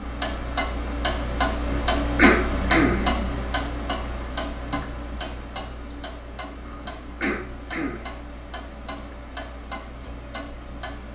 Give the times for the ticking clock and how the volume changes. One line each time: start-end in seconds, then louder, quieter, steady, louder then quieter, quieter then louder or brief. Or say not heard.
0.0-11.0 quieter.